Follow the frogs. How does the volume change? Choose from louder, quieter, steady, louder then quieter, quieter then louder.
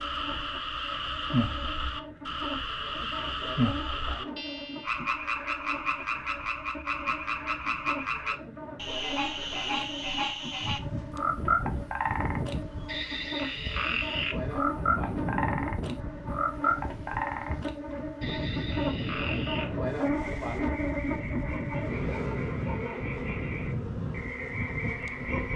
quieter.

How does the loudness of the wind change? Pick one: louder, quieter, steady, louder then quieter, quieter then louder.
louder.